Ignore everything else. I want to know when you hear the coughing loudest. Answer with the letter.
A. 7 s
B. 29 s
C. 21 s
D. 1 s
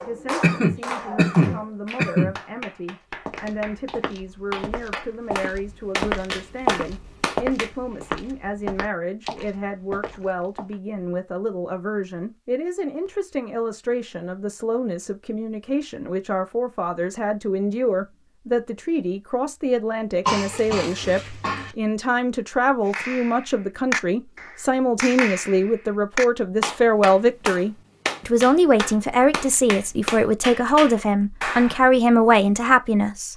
D.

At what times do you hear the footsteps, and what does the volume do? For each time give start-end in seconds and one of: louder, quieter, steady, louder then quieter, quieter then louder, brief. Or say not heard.
3.2-10.8 louder then quieter.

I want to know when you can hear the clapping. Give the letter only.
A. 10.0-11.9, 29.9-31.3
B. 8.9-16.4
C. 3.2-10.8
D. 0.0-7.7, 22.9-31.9
D.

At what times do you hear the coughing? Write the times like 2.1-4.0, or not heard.
0.4-2.4, 20.2-21.7.